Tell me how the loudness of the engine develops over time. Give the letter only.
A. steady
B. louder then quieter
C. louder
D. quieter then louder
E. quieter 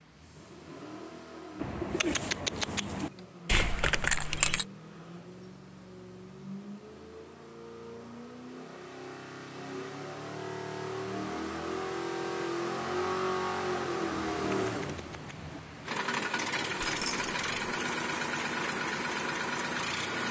C.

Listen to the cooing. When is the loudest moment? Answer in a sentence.
The loudest moment of the cooing is at 2 seconds.